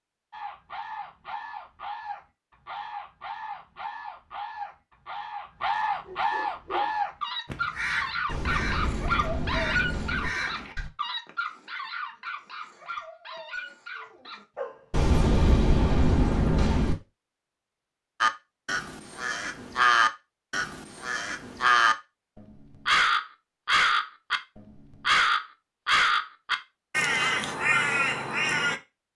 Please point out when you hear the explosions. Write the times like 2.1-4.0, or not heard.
8.2-10.3, 14.9-16.9.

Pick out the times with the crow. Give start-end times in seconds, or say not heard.
0.3-10.9, 18.2-21.9, 22.9-28.8.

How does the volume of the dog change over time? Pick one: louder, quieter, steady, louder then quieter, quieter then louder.
quieter.